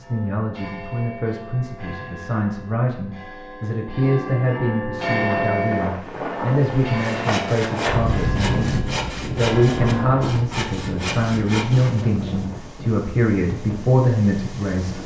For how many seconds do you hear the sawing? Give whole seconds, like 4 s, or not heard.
5 s.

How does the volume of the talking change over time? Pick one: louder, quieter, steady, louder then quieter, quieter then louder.
louder.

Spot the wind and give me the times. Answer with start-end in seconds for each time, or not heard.
5.0-15.0.